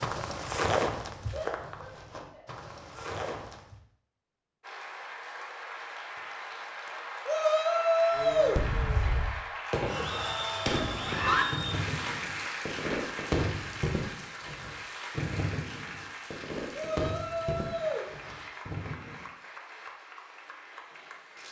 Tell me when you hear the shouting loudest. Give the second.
8 s.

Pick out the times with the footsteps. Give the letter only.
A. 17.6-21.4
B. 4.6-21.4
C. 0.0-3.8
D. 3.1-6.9
C.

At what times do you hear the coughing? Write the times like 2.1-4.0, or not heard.
not heard.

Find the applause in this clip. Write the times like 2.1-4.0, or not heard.
4.6-21.4.